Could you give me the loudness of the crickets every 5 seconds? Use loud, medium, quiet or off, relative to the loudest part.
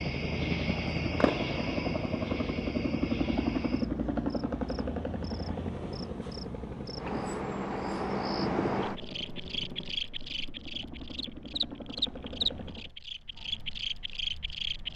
medium, loud, loud.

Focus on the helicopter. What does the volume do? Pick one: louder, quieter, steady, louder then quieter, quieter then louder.
quieter.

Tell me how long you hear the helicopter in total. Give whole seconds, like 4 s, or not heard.
13 s.